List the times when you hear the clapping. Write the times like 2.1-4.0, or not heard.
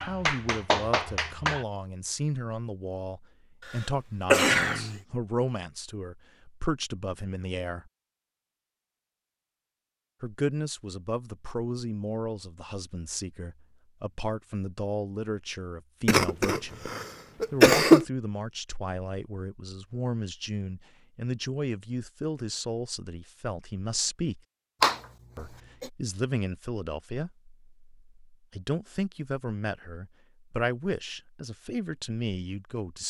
0.0-1.6.